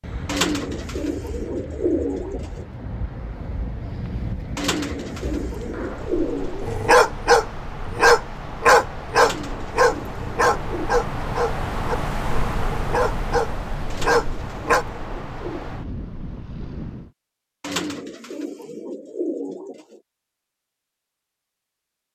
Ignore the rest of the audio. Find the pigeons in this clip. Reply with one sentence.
You can hear the pigeons from 0.2 to 2.6 s, from 4.5 to 7.0 s, from 9.2 to 10.9 s, from 13.9 to 15.8 s and from 17.6 to 20.0 s.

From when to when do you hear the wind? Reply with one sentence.
The wind can be heard from 0.0 to 17.1 s.